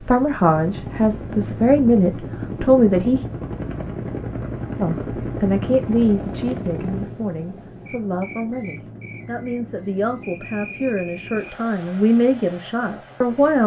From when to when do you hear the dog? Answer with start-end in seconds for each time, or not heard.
not heard.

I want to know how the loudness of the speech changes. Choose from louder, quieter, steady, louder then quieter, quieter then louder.
quieter then louder.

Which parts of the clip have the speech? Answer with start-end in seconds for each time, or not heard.
0.0-3.2, 4.8-13.6.